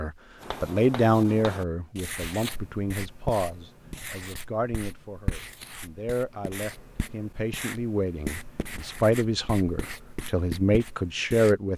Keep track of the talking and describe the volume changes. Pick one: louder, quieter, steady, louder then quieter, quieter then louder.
quieter then louder.